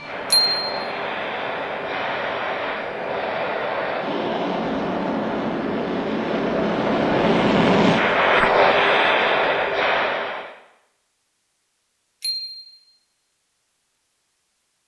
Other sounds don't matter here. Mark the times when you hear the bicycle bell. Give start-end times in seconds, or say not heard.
0.3-0.9, 12.2-12.8.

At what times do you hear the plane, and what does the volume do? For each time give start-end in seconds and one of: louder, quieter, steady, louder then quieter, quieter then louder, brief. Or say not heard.
0.0-10.6 louder.